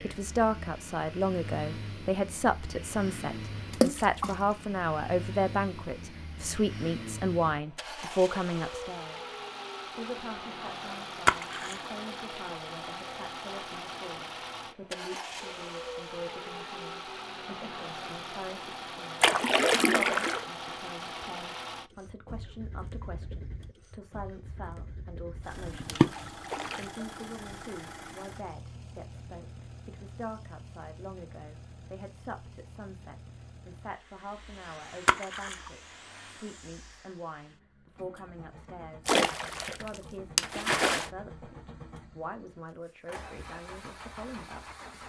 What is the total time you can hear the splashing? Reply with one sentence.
You can hear the splashing for 6 seconds altogether.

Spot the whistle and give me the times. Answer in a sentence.
The whistle can't be heard in this clip.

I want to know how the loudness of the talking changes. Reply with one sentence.
The volume of the talking goes down.